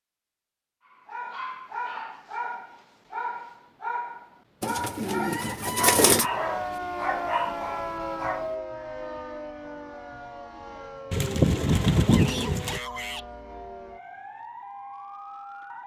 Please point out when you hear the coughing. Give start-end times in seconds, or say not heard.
not heard.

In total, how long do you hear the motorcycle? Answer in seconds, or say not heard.
not heard.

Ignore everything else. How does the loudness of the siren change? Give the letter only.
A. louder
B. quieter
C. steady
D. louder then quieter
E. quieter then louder
B.